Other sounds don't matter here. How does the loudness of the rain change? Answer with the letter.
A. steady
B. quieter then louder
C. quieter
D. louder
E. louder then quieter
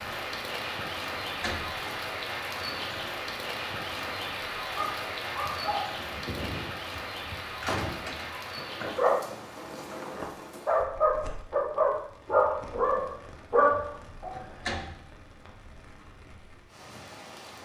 C.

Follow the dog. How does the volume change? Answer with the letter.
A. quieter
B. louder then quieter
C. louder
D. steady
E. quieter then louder
E.